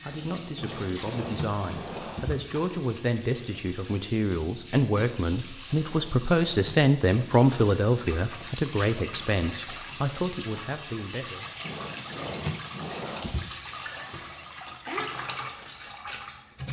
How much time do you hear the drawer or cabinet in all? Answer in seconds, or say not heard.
5 s.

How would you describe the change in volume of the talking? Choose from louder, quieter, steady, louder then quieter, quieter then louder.
louder then quieter.